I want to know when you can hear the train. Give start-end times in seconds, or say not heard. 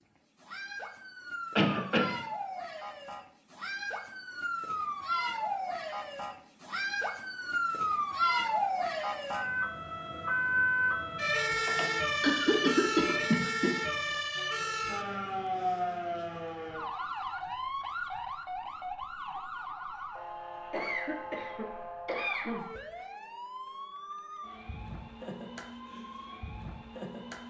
not heard.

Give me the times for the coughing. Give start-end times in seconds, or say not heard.
1.6-2.2, 11.7-13.7, 20.7-22.6.